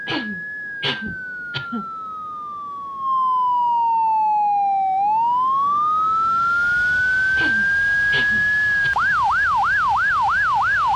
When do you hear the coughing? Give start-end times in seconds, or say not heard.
0.1-1.9, 7.3-9.1.